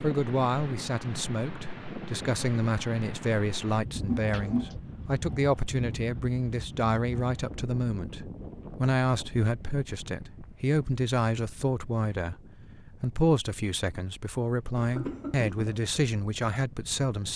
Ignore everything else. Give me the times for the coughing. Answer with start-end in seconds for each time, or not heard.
4.0-4.8, 14.8-15.8.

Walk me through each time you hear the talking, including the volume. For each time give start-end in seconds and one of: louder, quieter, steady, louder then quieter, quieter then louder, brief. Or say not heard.
0.0-17.3 steady.